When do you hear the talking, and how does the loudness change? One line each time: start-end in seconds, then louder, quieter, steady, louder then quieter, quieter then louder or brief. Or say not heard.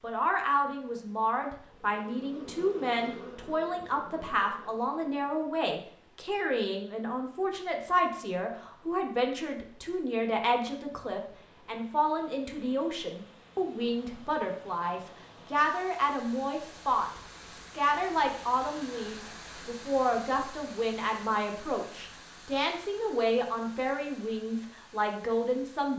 0.0-25.9 steady.